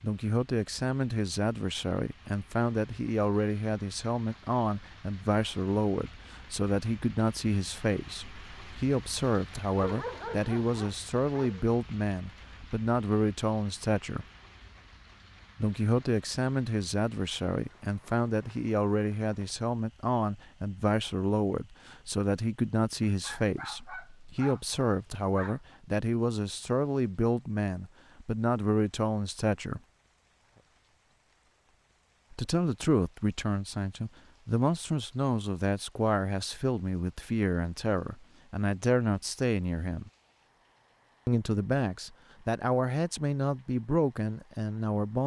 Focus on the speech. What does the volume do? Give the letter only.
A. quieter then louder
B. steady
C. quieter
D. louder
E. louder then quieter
B.